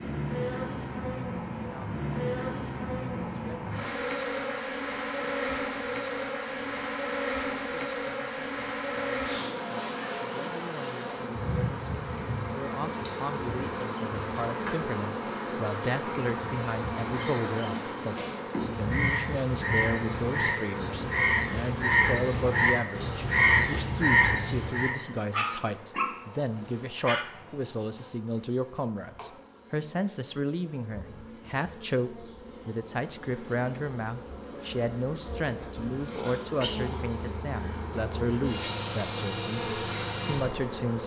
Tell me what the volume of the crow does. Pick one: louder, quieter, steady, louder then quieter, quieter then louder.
louder.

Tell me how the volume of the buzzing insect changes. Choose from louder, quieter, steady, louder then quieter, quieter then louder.
quieter then louder.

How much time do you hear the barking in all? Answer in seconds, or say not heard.
2 s.